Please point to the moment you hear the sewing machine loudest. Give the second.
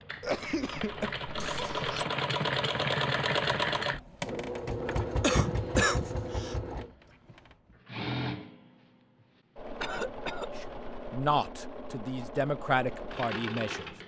3 s.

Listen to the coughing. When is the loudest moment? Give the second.
6 s.